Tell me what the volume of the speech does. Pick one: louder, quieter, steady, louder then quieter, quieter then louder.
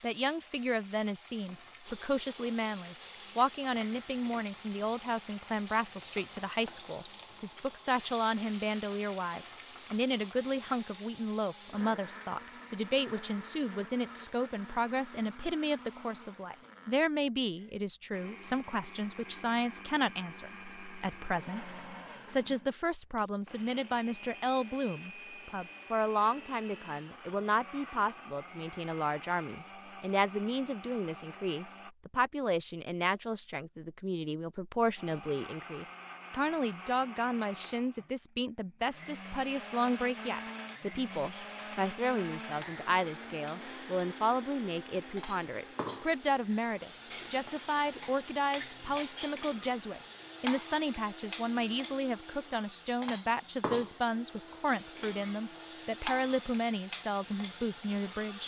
steady.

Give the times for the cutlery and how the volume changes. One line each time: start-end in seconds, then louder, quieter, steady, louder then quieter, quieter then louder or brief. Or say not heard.
not heard.